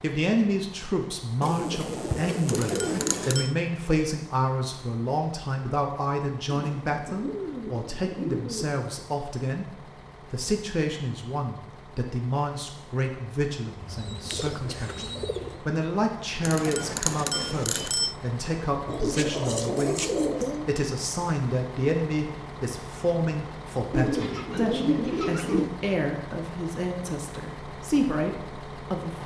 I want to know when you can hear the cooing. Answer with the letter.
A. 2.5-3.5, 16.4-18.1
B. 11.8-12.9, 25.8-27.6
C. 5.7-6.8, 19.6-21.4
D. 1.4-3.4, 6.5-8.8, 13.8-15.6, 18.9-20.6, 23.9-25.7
D.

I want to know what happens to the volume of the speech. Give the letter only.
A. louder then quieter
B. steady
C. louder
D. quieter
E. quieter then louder
B.